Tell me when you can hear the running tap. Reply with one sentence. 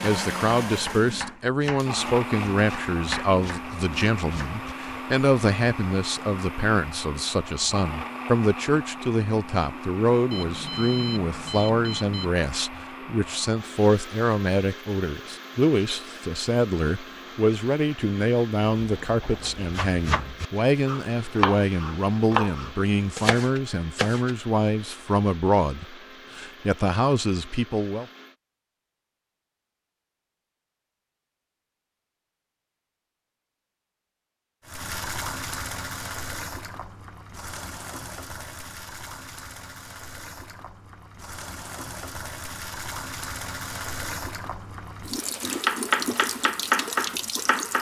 You can hear the running tap from 34.6 to 47.7 s.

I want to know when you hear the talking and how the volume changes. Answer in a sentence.
You can hear the talking from 0.0 to 28.1 s, at a steady volume.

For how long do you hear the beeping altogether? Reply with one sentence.
The beeping can be heard for 2 seconds in total.